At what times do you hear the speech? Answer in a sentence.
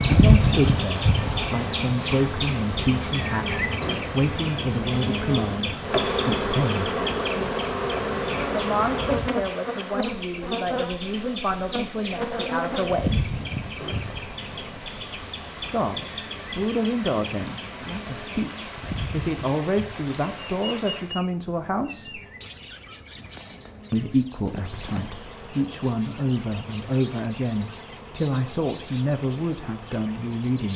The speech can be heard from 0.0 to 6.9 s, from 8.5 to 13.2 s, from 15.5 to 22.1 s and from 23.9 to 30.7 s.